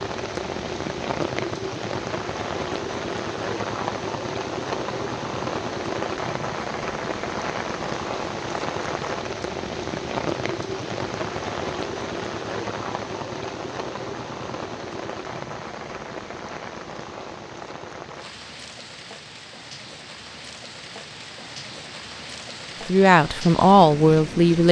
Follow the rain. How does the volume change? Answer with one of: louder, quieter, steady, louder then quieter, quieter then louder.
quieter.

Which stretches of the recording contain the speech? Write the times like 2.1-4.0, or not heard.
22.9-24.6.